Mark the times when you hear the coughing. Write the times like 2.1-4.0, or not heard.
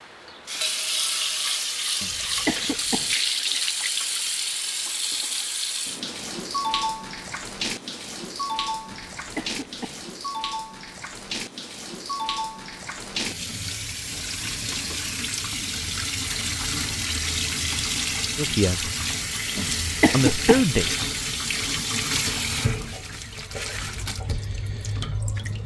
2.0-3.1, 9.2-10.1, 19.6-20.6.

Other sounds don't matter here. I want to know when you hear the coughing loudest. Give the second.
20 s.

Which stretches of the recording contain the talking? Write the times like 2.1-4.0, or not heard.
18.4-18.9, 20.1-20.9.